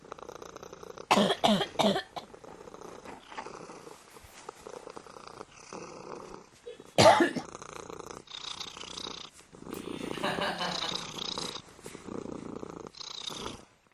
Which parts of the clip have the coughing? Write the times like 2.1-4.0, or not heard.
1.1-2.2, 6.7-7.5, 9.7-10.9.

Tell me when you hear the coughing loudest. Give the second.
7 s.